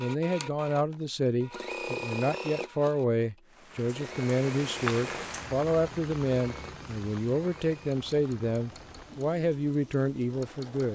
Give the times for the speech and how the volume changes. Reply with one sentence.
The speech can be heard from 0.0 to 10.8 s, at a steady volume.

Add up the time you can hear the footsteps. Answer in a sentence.
You can't hear the footsteps here.